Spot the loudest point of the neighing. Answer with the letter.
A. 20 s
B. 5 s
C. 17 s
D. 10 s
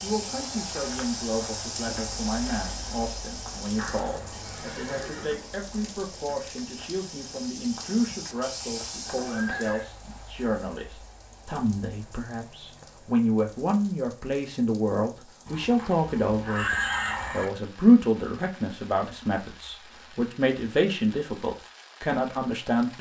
C.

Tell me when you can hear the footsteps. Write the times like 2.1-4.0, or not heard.
0.0-9.6.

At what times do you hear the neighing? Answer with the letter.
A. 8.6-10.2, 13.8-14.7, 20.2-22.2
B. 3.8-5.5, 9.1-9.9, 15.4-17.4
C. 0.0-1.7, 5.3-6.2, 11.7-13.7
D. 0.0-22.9
B.